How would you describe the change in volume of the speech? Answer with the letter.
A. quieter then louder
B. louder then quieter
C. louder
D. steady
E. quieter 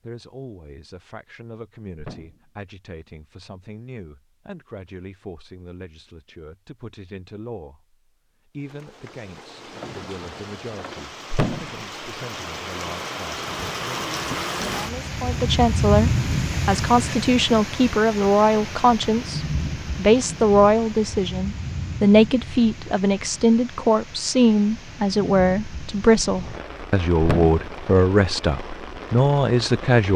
C.